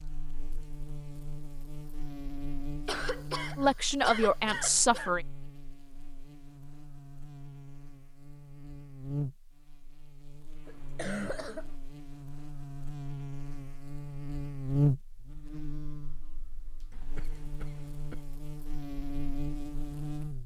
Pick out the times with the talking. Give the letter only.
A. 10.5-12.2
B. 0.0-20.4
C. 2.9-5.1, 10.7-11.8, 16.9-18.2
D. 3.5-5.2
D.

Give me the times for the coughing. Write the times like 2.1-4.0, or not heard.
2.9-5.1, 10.7-11.8, 16.9-18.2.